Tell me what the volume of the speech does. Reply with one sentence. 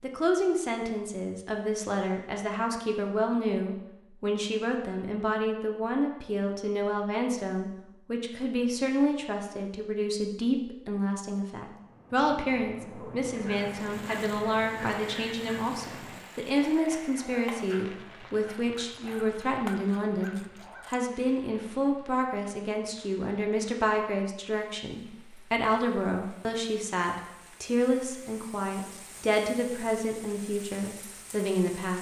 The loudness of the speech stays about the same.